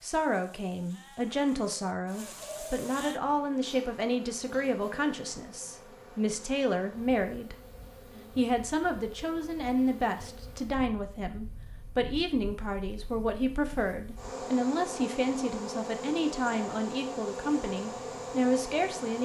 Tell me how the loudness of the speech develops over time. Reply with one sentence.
The volume of the speech stays about the same.